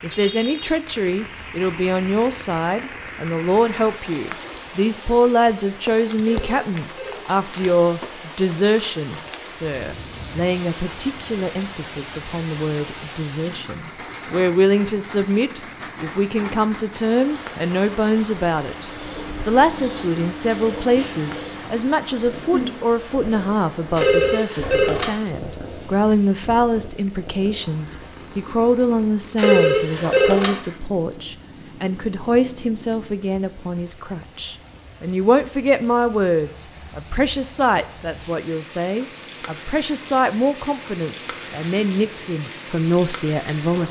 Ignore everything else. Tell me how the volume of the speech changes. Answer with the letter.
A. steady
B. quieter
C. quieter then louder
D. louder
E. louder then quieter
A.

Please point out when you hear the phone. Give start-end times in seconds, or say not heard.
6.2-7.4, 23.9-25.2, 29.4-30.6.